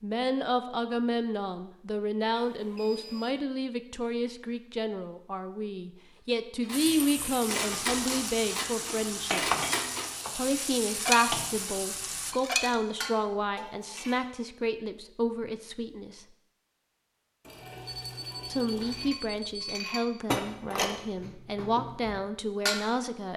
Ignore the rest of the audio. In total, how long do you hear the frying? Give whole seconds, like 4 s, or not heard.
6 s.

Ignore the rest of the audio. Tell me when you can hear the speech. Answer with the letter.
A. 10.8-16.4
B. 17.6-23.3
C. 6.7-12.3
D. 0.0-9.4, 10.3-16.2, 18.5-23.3
D.